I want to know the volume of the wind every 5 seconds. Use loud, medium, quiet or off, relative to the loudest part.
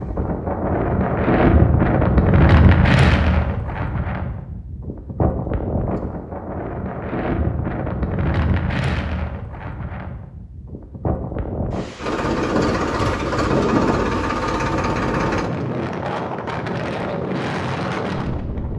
loud, medium, medium, medium.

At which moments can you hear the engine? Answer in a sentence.
You can hear the engine from 11.9 to 15.5 s.